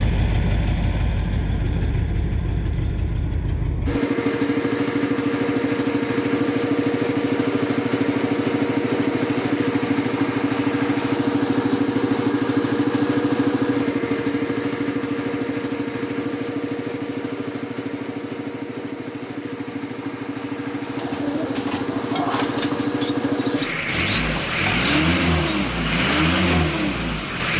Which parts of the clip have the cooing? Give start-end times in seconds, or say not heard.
20.9-26.2.